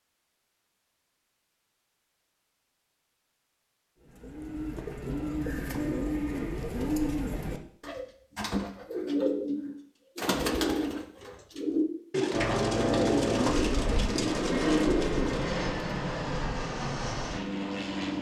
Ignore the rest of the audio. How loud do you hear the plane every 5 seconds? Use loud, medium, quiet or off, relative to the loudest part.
off, off, loud, loud.